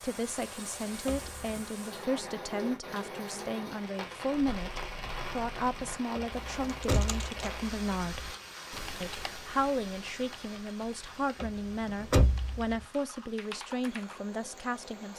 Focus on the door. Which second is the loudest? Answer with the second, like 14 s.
12 s.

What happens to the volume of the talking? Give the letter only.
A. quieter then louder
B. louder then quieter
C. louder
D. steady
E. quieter
D.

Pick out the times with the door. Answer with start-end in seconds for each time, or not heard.
1.1-1.6, 6.2-7.2, 11.4-12.8.